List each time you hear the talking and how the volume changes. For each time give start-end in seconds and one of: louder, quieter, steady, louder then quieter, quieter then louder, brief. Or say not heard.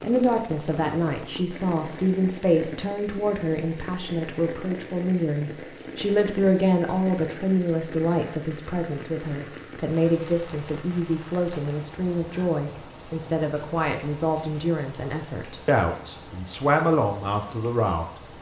0.0-18.1 steady.